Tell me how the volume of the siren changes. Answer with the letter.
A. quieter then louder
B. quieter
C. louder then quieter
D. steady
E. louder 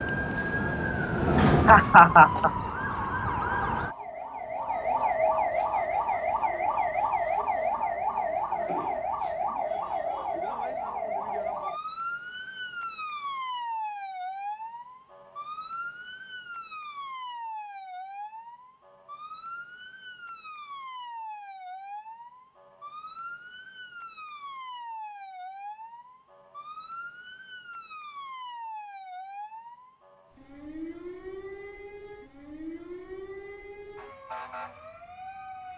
B.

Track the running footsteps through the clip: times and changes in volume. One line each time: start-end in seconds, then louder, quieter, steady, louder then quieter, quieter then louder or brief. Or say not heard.
not heard.